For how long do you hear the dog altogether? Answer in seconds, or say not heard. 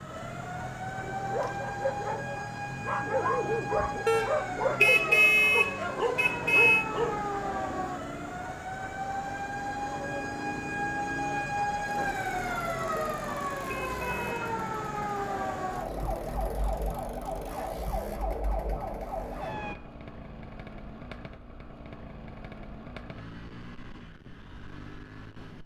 6 s.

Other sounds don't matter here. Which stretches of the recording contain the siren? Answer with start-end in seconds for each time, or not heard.
0.0-19.8.